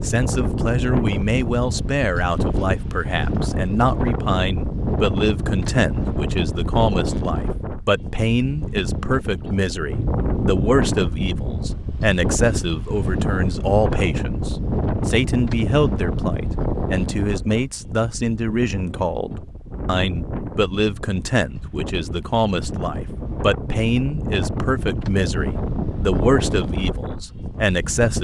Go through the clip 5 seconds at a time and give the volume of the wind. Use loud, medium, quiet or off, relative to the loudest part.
loud, loud, loud, loud, medium, loud.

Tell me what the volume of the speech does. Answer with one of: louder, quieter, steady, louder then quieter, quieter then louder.
steady.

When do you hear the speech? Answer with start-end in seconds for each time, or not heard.
0.0-28.1.